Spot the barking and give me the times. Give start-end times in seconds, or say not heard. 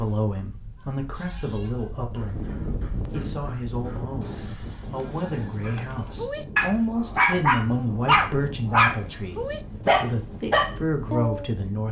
5.7-11.5.